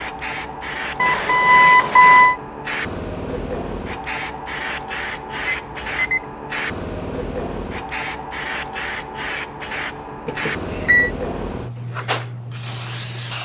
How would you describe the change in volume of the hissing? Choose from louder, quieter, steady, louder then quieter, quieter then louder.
steady.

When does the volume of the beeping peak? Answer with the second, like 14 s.
2 s.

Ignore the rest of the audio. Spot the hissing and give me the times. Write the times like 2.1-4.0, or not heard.
0.0-13.3.